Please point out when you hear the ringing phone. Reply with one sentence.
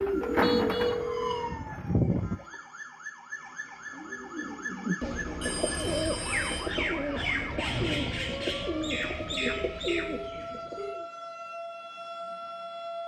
You can hear the ringing phone from 0.2 to 1.6 s, from 5.4 to 6.7 s and from 9.4 to 11.0 s.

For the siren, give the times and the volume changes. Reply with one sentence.
You can hear the siren from 0.0 to 13.0 s, at a steady volume.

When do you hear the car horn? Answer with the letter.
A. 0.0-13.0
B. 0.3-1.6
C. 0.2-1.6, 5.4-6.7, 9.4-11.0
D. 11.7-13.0
B.